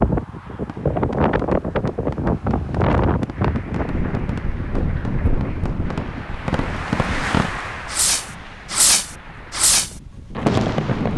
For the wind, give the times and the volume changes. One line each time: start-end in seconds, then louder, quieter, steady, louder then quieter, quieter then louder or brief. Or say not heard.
0.0-11.1 quieter.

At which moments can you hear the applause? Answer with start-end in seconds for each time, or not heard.
3.3-9.7.